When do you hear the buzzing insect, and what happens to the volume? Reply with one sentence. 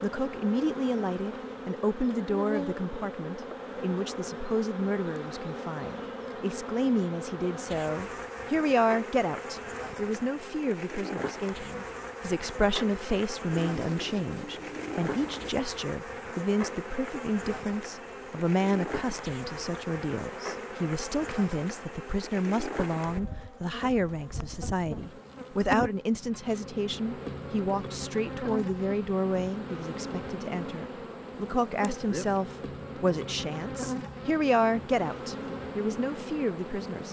You can hear the buzzing insect from 0.0 to 37.0 s, at a steady volume.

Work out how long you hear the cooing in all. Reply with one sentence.
You can hear the cooing for 2 seconds altogether.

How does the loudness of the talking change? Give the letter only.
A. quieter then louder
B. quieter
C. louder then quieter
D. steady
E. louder
D.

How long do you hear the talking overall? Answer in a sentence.
You can hear the talking for 37 seconds altogether.